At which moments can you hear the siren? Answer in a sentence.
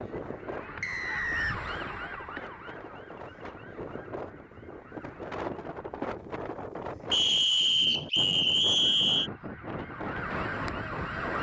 The siren can be heard from 0.0 to 6.0 s and from 8.7 to 11.3 s.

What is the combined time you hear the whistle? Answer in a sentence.
The whistle can be heard for 3 seconds in total.